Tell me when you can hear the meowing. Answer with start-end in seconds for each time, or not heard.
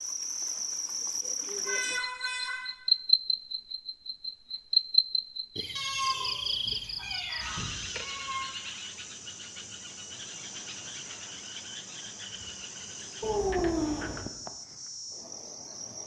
1.6-2.6, 5.8-8.5, 13.2-14.2.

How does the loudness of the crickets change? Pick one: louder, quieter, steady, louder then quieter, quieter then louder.
quieter.